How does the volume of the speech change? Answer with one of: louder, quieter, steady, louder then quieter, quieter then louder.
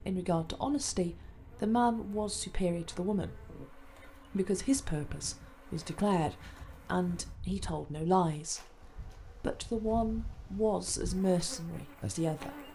steady.